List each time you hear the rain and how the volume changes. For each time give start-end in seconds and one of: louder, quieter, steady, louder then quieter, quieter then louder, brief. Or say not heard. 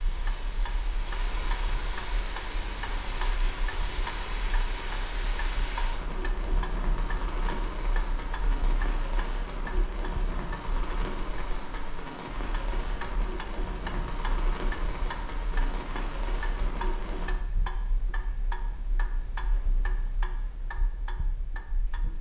0.0-17.4 steady.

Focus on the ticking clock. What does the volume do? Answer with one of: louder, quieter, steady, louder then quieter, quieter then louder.
steady.